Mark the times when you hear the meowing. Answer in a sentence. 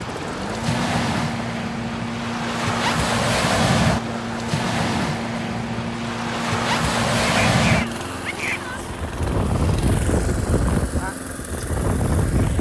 The meowing can be heard from 7.2 to 8.9 s.